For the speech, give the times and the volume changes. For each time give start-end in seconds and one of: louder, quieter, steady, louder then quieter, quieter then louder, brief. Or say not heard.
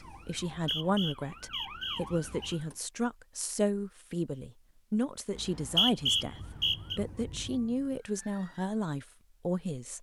0.0-9.9 steady.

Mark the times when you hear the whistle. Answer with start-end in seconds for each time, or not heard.
0.2-2.6, 5.3-7.0.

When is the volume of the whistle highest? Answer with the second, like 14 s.
6 s.